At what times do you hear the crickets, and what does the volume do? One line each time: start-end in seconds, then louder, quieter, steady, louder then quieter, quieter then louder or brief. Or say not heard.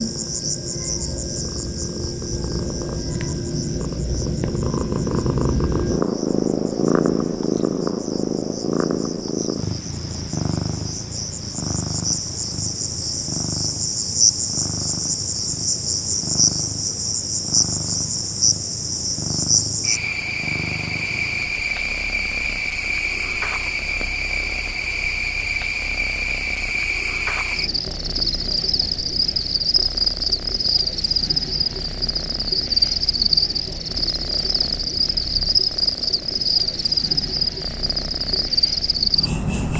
0.0-39.7 louder.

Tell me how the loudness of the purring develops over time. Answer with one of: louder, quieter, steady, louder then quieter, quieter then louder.
quieter.